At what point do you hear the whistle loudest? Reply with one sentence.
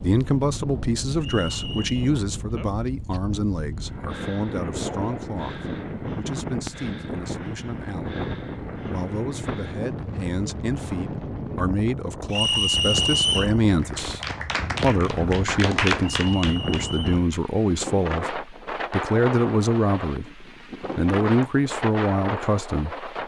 The loudest moment of the whistle is at 13 seconds.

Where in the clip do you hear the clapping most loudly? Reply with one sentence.
The volume of the clapping peaks at 16 seconds.